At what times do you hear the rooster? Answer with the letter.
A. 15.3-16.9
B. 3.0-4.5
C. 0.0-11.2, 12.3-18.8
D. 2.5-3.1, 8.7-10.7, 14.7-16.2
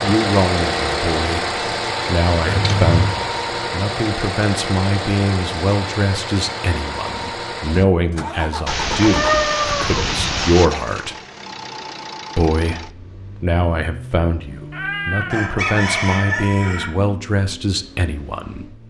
A.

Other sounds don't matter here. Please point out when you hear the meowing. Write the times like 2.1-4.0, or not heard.
2.5-3.1, 8.7-10.7, 14.7-16.2.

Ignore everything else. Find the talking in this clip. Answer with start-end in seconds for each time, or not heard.
0.0-11.2, 12.3-18.8.